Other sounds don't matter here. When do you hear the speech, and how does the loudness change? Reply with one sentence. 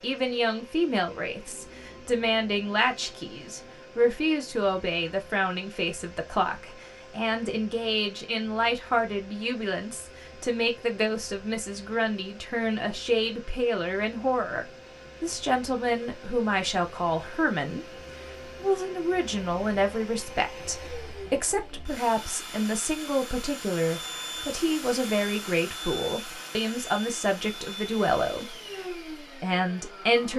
You can hear the speech from 0.0 to 30.3 s, at a steady volume.